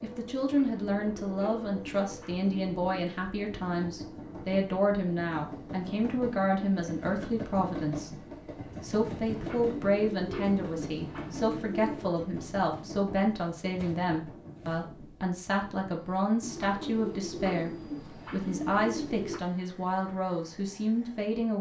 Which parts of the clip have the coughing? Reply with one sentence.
You can't hear the coughing here.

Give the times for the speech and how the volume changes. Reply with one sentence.
The speech can be heard from 0.0 to 21.5 s, at a steady volume.